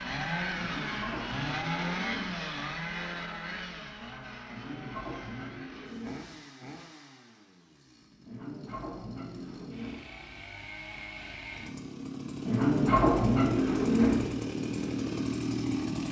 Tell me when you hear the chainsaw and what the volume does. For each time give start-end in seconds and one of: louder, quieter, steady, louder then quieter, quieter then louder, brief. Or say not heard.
0.0-16.0 quieter then louder.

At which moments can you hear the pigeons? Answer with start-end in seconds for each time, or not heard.
0.6-2.4, 4.5-6.2, 8.2-10.1, 12.4-14.2.